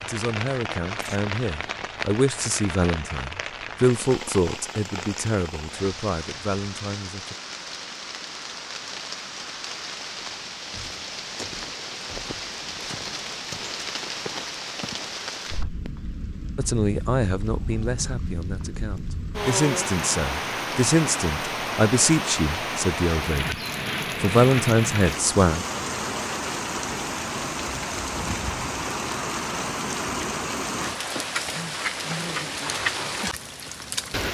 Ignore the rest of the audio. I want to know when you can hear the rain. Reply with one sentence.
The rain can be heard from 0.0 to 34.3 s.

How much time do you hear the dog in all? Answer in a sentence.
The dog can't be heard in this clip.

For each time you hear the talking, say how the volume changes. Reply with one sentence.
You can hear the talking from 0.0 to 7.3 s, getting louder then quieter; from 16.6 to 23.6 s, getting quieter then louder; and briefly from 24.2 to 25.6 s.